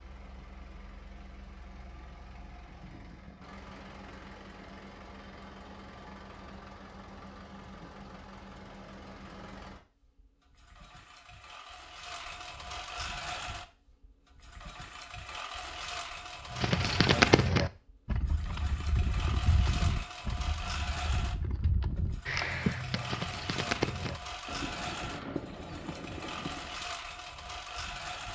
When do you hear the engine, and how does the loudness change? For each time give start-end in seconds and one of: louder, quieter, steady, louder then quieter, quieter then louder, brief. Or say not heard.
0.0-28.2 louder.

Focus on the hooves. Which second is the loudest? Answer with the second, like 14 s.
17 s.